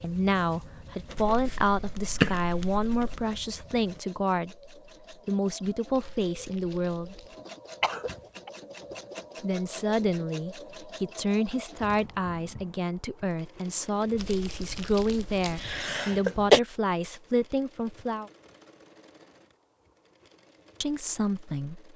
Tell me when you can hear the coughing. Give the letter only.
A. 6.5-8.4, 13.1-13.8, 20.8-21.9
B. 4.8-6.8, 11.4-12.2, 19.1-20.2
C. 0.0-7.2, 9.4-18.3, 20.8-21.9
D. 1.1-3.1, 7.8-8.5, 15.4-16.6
D.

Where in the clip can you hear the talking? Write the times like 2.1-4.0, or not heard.
0.0-7.2, 9.4-18.3, 20.8-21.9.